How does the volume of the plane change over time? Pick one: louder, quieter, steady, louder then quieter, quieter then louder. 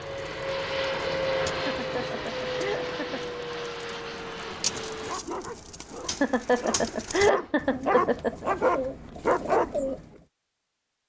quieter.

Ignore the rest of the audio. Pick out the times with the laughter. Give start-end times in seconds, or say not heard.
1.5-3.3, 6.0-8.4.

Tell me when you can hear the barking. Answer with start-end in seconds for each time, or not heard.
5.0-9.9.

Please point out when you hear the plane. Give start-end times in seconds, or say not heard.
0.0-5.2.